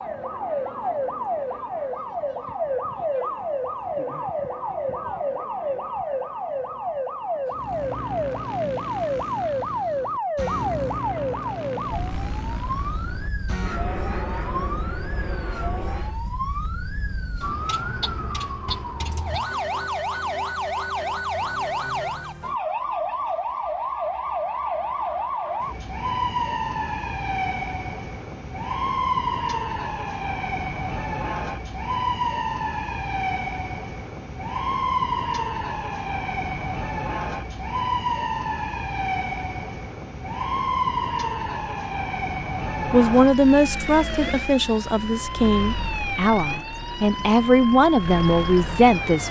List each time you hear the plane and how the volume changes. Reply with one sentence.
The plane can be heard from 7.5 to 16.2 s, at a steady volume.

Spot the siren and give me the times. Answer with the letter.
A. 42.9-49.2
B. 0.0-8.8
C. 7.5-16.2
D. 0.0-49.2
D.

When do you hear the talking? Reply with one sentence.
The talking can be heard from 42.9 to 49.2 s.